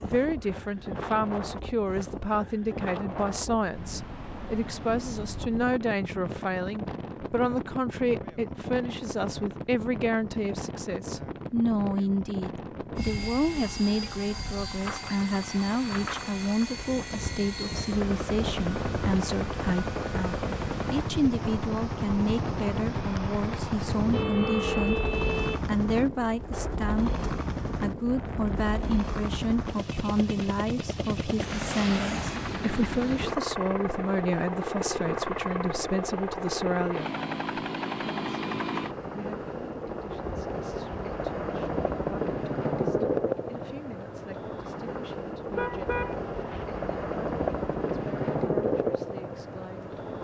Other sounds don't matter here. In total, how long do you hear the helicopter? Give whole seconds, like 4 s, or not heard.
37 s.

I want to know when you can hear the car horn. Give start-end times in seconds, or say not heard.
13.6-14.2, 24.1-25.7, 45.5-46.7.